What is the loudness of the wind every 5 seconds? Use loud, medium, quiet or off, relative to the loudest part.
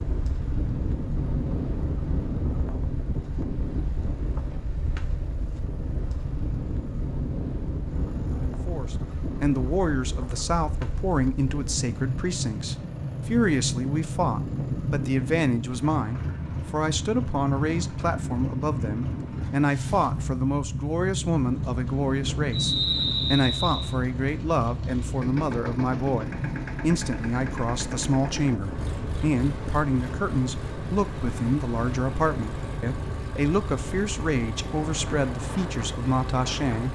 loud, loud, loud, loud, loud, loud, medium, medium.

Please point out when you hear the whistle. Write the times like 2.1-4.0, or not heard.
22.5-23.9.